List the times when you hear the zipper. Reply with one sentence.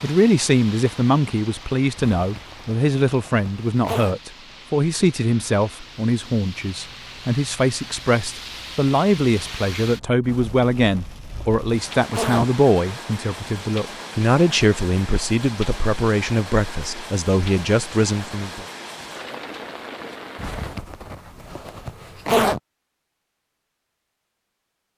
The zipper can be heard from 1.9 to 4.2 s, from 10.2 to 12.6 s and from 20.4 to 22.6 s.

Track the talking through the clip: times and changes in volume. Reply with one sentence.
The talking can be heard from 0.0 to 18.6 s, at a steady volume.